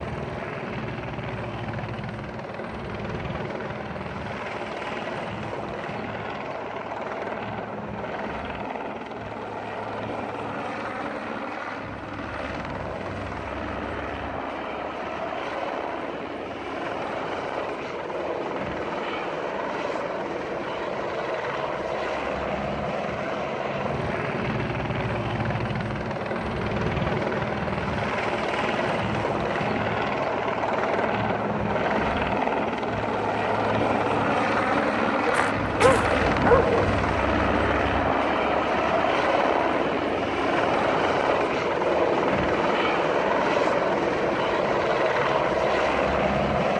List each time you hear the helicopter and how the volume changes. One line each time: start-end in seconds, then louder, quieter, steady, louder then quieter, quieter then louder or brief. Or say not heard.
0.0-46.7 louder.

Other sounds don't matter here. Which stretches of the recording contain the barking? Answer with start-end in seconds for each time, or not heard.
35.2-37.0.